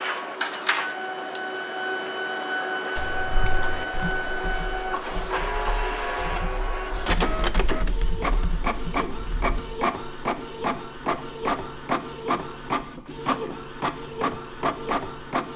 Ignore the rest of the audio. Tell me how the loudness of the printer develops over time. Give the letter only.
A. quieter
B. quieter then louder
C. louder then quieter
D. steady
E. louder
D.